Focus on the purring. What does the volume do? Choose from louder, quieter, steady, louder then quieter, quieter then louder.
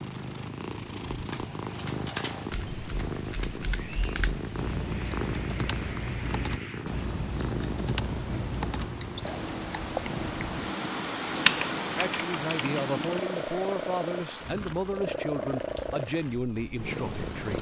steady.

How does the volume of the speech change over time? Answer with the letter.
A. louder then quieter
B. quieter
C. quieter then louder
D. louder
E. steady
E.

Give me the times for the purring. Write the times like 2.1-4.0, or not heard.
0.0-17.5.